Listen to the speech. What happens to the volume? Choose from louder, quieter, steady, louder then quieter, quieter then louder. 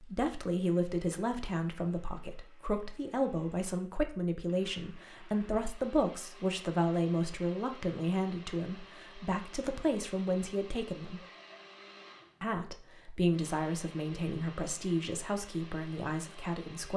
steady.